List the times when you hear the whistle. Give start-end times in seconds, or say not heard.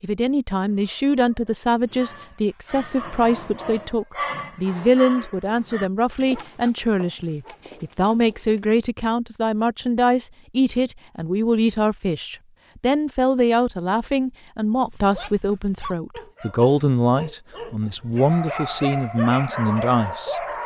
not heard.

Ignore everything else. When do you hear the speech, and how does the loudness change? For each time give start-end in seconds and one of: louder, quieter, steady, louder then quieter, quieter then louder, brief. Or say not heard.
0.0-20.4 steady.